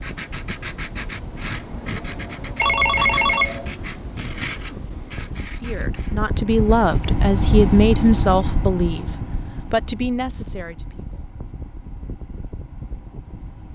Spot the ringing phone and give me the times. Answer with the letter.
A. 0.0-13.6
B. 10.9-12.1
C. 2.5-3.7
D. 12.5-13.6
C.